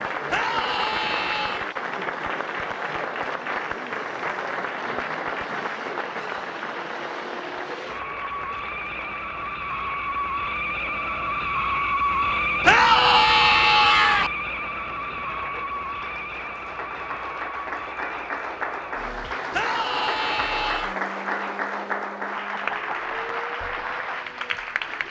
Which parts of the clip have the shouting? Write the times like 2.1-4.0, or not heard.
0.2-1.7, 12.6-14.3, 19.5-20.9.